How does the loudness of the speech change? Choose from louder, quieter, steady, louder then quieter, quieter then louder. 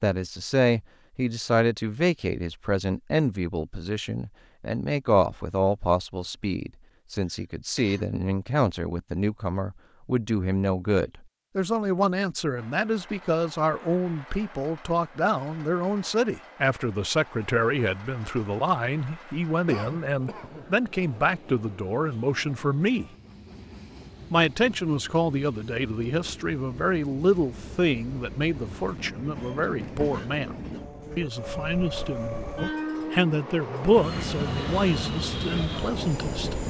steady.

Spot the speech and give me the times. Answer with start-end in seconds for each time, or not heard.
0.0-23.1, 24.3-30.6, 31.1-36.5.